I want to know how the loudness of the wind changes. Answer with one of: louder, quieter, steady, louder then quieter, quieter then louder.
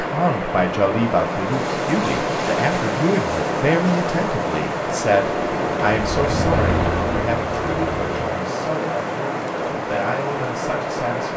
steady.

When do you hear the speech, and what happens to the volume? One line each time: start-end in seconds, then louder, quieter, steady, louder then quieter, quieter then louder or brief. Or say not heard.
0.0-11.3 quieter.